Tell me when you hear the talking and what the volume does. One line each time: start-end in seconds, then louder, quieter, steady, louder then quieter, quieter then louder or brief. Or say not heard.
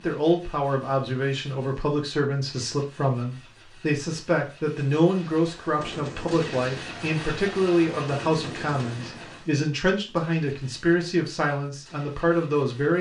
0.0-12.9 steady.